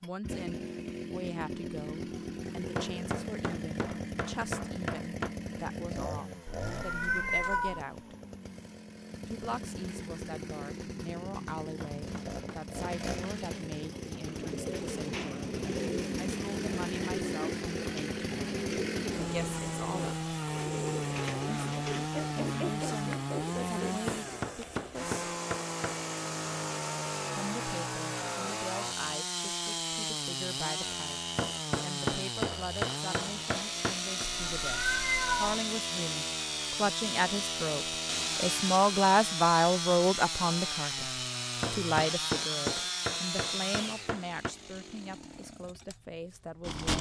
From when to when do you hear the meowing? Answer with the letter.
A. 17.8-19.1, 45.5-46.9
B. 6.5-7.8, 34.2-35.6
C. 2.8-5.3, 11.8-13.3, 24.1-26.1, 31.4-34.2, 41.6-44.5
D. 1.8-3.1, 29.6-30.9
B.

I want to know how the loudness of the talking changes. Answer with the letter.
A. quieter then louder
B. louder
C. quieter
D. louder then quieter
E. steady
B.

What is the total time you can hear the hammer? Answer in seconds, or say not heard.
12 s.